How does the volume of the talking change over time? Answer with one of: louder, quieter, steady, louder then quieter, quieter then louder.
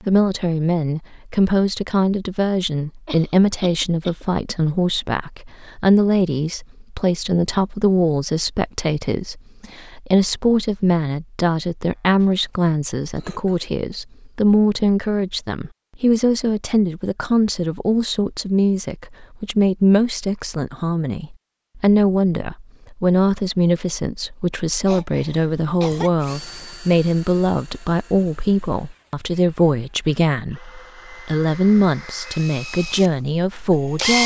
steady.